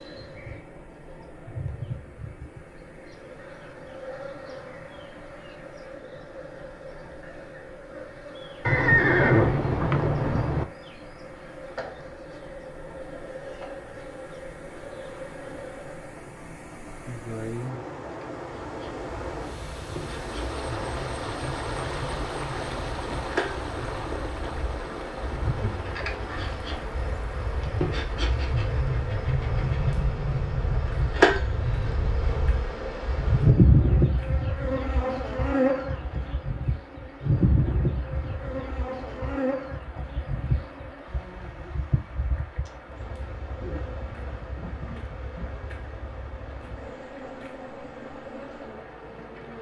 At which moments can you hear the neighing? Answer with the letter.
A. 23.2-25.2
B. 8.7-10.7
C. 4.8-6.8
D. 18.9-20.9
B.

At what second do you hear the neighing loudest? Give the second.
9 s.